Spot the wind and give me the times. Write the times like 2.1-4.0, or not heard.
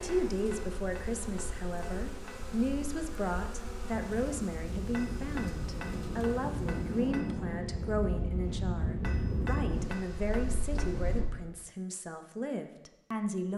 0.0-11.2.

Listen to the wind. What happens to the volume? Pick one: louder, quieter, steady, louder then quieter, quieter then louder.
louder.